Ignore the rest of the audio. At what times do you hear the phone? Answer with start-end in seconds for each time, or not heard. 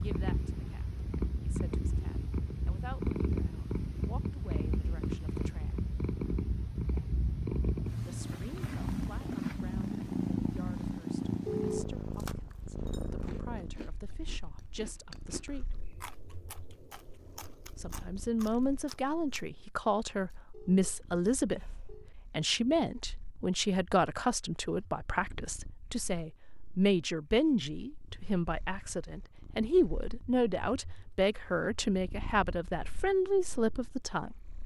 11.4-12.2, 20.5-22.1.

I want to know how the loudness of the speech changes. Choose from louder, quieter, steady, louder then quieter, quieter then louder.
louder.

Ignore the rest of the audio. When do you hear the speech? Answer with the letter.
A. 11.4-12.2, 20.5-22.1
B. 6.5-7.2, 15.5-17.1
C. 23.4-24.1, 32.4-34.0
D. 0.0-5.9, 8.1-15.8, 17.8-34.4
D.